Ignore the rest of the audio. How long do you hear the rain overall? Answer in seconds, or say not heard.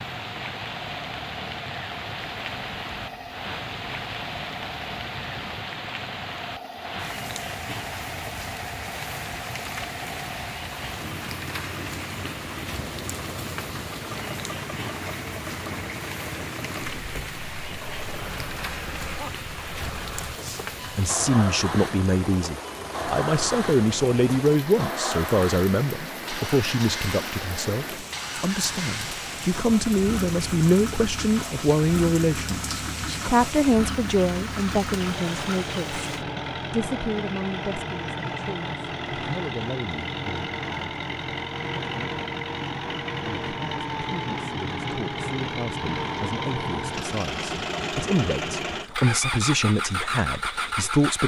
36 s.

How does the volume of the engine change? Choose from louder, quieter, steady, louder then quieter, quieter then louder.
louder.